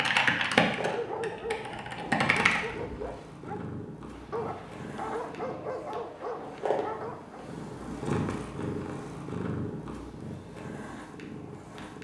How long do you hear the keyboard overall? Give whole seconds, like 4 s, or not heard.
3 s.